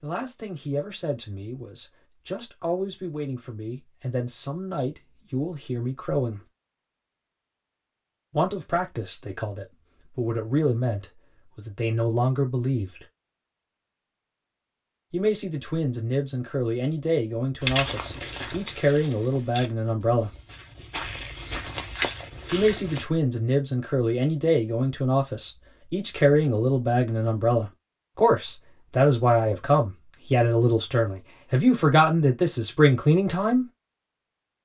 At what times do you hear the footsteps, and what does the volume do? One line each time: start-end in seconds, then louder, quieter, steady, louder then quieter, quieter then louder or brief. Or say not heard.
17.6-23.1 quieter then louder.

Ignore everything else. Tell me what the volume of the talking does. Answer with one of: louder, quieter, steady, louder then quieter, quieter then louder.
louder.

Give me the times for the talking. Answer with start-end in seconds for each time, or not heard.
0.0-6.4, 8.3-13.1, 15.1-20.3, 22.5-33.6.